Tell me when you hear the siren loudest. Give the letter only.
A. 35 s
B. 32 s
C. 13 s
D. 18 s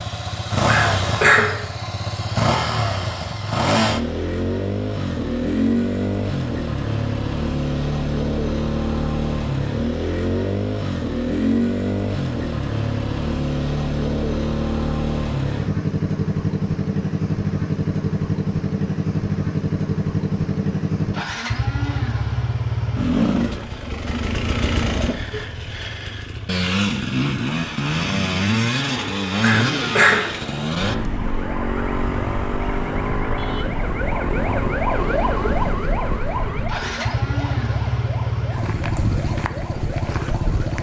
A.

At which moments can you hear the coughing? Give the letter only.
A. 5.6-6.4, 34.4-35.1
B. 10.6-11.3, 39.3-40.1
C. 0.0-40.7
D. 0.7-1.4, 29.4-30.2
D.